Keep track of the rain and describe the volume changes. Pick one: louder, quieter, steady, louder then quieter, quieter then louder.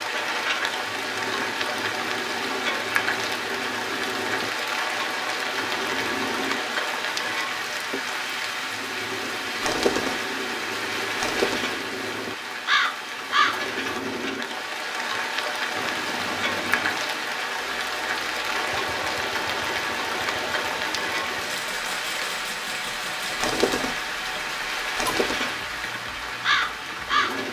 steady.